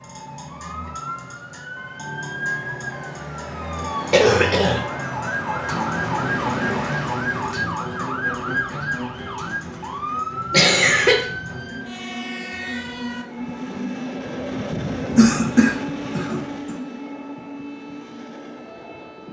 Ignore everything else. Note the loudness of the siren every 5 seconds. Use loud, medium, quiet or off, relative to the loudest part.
medium, loud, medium, quiet.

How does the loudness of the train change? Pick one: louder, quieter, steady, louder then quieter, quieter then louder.
louder then quieter.